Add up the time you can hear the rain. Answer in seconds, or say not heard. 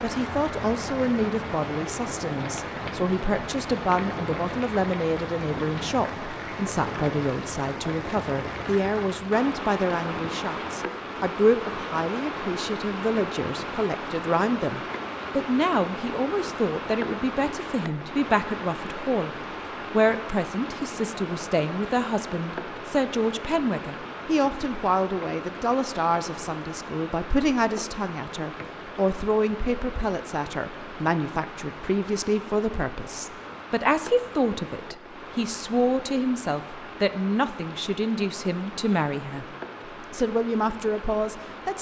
42 s.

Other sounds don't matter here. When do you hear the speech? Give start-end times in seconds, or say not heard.
0.0-39.5, 40.1-41.7.